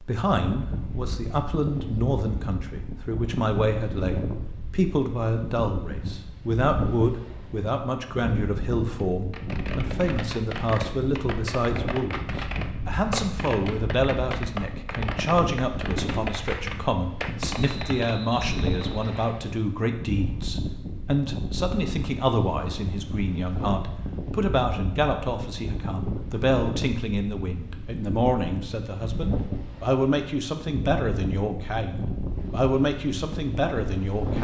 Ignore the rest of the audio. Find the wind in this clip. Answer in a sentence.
The wind can be heard from 0.3 to 34.3 s.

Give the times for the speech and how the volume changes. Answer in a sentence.
The speech can be heard from 0.0 to 12.2 s, at a steady volume; and from 12.8 to 34.3 s, at a steady volume.